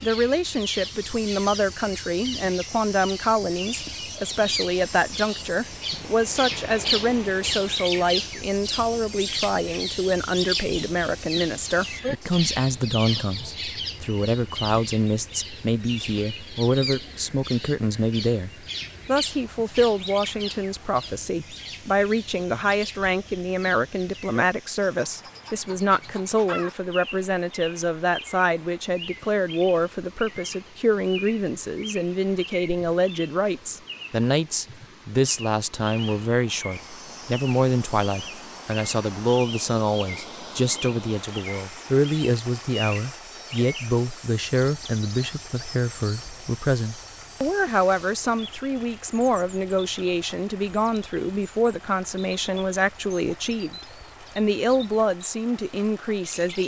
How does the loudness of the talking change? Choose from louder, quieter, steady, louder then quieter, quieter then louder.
steady.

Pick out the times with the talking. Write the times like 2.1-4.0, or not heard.
0.0-56.6.